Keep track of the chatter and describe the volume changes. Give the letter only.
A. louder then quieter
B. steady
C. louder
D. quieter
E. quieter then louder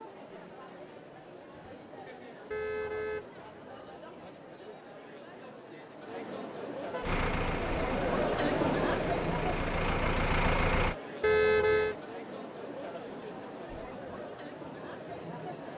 A.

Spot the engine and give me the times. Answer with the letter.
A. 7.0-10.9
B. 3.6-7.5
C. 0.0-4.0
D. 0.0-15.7
A.